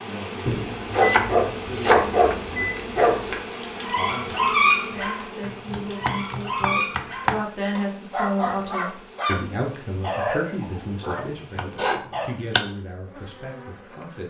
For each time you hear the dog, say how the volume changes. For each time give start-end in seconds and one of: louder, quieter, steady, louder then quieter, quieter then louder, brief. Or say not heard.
0.5-12.2 quieter.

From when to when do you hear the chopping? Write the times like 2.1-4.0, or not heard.
0.9-2.5, 5.4-7.5, 11.2-12.7.